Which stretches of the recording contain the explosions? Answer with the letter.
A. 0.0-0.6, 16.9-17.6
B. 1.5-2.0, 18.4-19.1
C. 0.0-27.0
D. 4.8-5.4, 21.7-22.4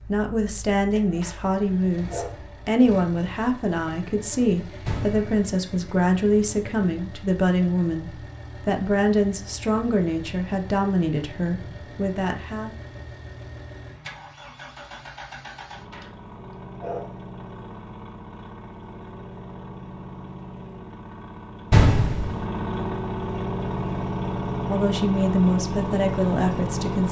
D.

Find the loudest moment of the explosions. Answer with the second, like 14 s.
22 s.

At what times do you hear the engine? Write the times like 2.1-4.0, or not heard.
0.0-27.0.